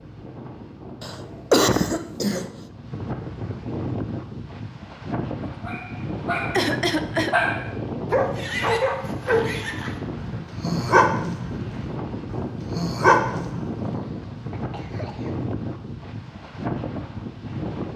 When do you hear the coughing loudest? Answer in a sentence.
The loudest moment of the coughing is at 2 seconds.